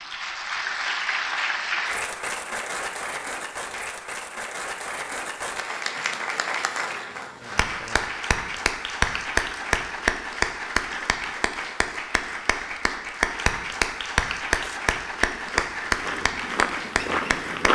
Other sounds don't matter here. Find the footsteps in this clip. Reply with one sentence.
The footsteps can be heard from 14.6 to 17.7 s.